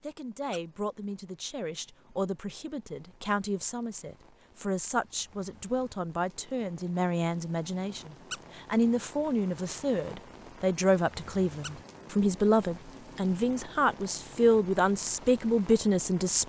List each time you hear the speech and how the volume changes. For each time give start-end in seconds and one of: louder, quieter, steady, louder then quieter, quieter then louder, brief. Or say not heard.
0.0-16.4 louder.